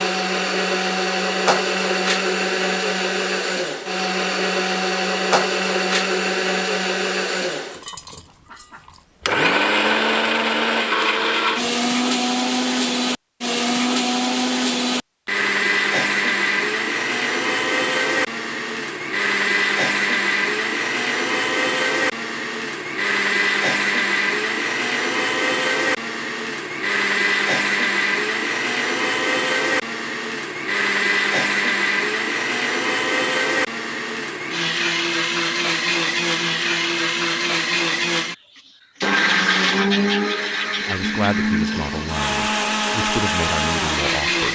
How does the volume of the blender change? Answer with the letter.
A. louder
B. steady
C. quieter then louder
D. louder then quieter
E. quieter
B.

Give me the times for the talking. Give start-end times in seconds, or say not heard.
40.9-44.5.